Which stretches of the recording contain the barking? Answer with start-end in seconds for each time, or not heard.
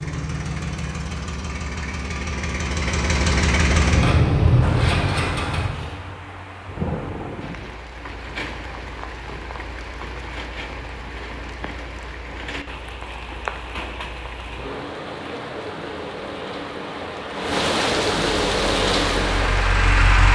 not heard.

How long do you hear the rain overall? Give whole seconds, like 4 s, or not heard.
16 s.